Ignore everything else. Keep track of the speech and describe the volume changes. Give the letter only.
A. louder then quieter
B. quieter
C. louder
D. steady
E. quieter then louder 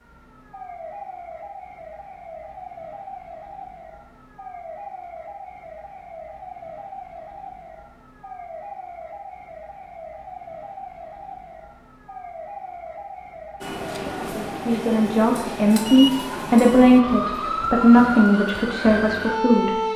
A.